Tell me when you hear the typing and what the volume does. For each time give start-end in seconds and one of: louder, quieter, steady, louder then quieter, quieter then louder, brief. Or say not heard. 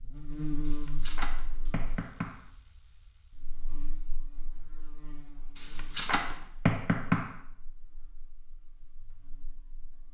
not heard.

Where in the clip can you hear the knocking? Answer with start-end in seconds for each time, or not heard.
0.7-2.5, 5.5-7.4.